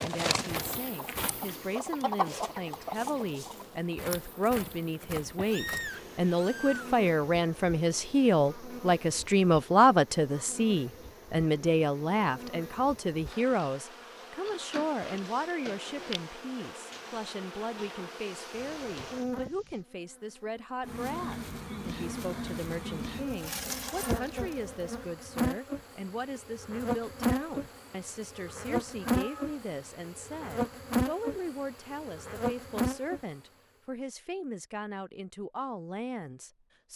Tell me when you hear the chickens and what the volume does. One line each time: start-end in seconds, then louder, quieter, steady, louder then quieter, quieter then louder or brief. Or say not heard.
0.0-4.0 louder then quieter.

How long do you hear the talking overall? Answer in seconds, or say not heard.
37 s.